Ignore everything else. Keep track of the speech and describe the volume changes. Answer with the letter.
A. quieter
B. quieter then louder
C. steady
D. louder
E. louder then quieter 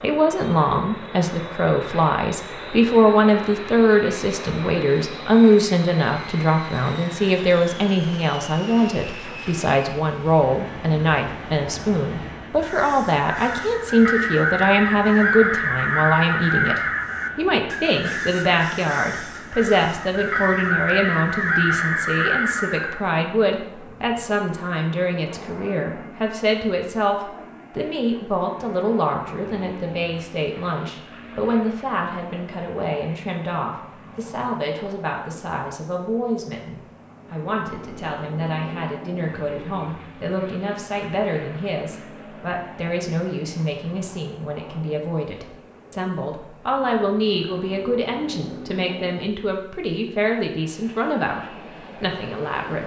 A.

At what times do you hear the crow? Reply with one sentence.
You can hear the crow from 12.6 to 23.1 s.